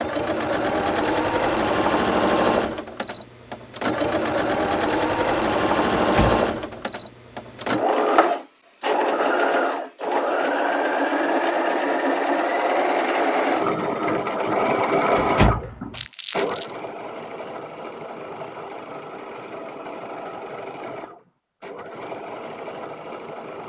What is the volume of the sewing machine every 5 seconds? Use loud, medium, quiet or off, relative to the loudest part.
loud, loud, loud, medium, quiet.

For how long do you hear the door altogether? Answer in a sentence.
You can hear the door for 2 seconds altogether.